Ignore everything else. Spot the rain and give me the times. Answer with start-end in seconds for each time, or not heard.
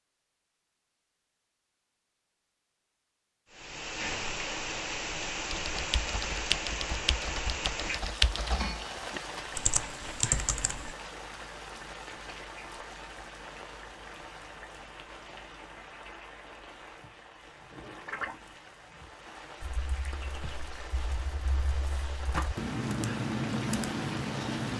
3.5-24.7.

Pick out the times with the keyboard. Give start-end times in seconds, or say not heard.
5.5-10.9, 19.6-24.7.